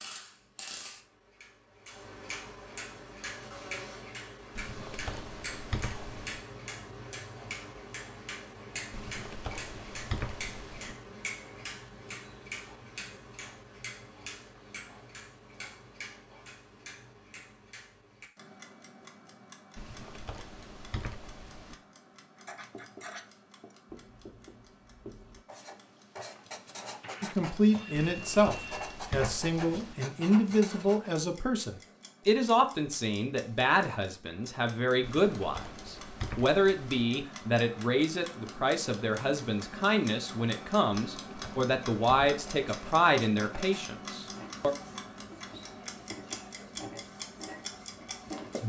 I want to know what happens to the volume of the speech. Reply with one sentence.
The volume of the speech stays about the same.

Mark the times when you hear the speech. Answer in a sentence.
You can hear the speech from 27.2 to 44.8 s.